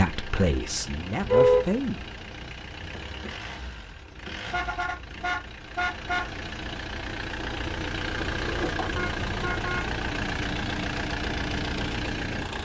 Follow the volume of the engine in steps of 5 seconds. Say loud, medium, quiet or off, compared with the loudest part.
medium, loud, loud.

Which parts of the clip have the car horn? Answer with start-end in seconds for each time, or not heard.
1.2-1.7, 4.4-6.3, 8.8-10.8.